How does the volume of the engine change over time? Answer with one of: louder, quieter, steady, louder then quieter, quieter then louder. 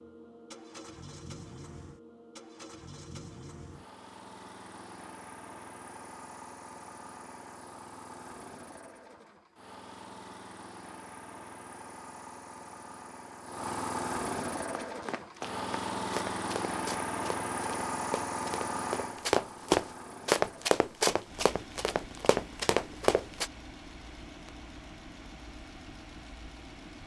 louder then quieter.